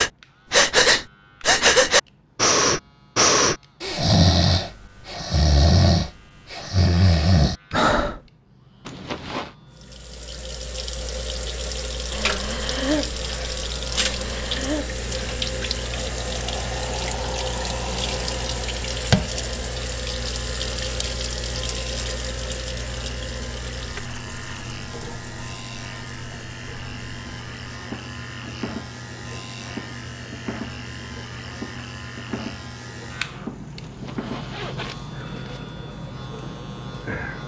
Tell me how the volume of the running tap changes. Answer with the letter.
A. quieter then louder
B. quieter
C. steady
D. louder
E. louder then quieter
B.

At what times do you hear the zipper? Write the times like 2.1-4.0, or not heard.
8.8-9.6, 33.8-35.6.